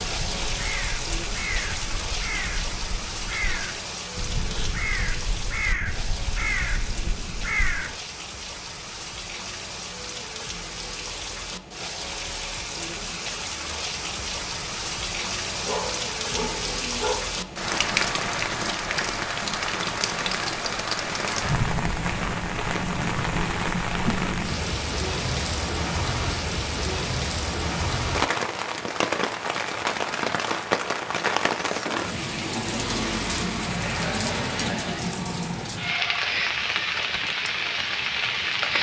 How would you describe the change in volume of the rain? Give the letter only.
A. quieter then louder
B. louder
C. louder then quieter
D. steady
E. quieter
B.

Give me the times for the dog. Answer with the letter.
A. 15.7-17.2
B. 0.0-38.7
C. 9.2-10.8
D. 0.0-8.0
A.